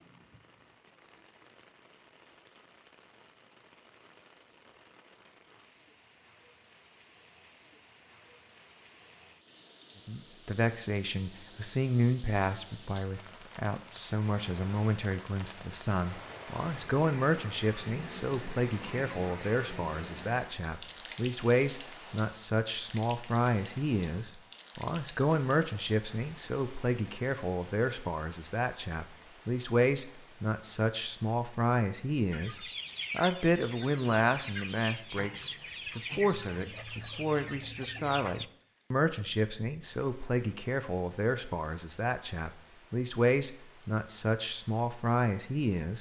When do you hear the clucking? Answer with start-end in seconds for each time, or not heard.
32.3-38.5.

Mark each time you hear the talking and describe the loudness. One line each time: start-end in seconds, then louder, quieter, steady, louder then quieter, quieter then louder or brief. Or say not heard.
10.1-45.9 steady.